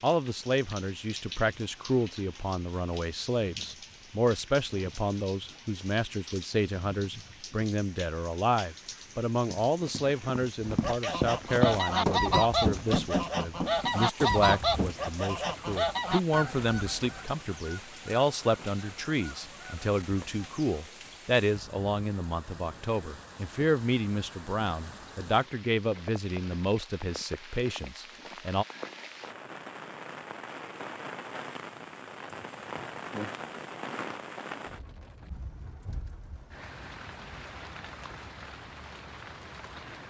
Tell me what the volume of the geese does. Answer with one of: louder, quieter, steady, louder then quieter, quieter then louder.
quieter.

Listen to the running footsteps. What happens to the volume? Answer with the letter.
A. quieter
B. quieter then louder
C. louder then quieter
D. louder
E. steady
C.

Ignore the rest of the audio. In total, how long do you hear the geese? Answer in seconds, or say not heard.
10 s.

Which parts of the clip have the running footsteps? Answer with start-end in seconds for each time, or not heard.
9.5-14.9.